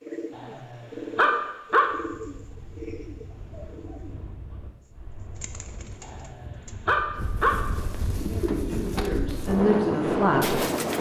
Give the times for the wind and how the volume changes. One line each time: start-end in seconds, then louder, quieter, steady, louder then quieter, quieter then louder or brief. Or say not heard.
1.8-10.9 louder.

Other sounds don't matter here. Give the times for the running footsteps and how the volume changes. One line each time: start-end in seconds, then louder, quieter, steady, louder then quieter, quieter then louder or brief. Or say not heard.
not heard.